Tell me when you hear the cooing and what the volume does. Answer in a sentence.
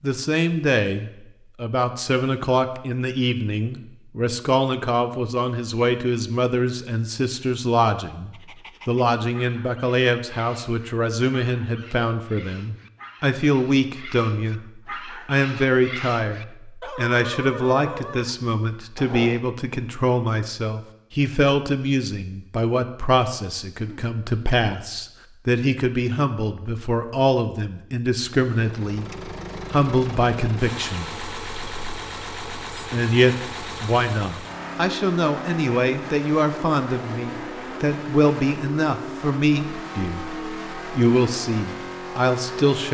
You can't hear the cooing here.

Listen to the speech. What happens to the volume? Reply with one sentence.
The loudness of the speech stays about the same.